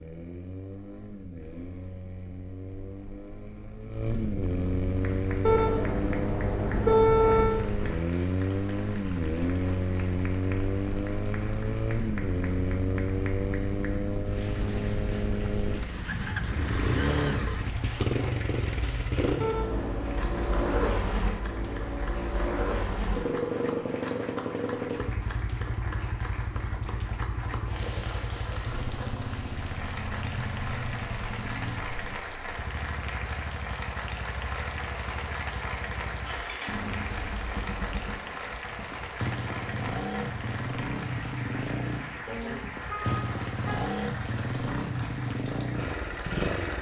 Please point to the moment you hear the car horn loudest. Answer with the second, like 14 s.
7 s.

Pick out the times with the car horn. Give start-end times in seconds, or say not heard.
5.4-7.5, 19.4-20.9, 42.2-43.9.